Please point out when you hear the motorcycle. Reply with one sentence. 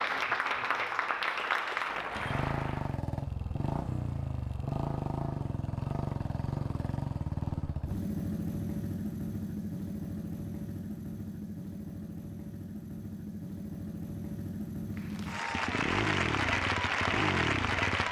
The motorcycle can be heard from 2.1 to 18.0 s.